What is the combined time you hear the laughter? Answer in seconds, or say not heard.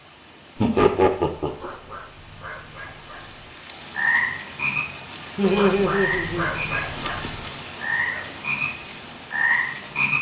2 s.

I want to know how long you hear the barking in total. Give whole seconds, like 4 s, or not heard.
4 s.